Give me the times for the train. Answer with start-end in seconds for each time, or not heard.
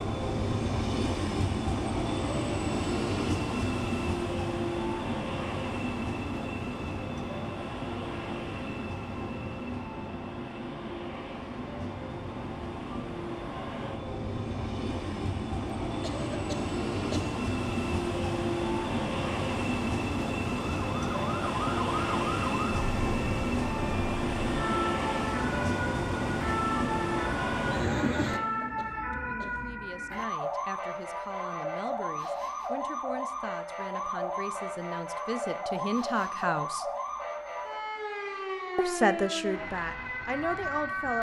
0.0-28.8.